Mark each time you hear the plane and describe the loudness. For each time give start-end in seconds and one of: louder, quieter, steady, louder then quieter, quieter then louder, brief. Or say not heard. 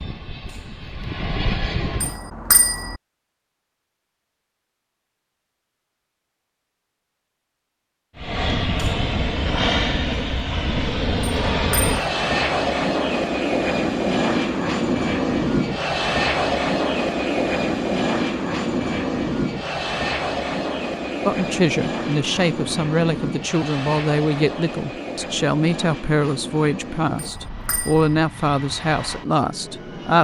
0.0-2.1 brief
8.2-30.1 quieter.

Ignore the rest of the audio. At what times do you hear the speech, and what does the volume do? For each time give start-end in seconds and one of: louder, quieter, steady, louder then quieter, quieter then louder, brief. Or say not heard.
21.2-30.1 steady.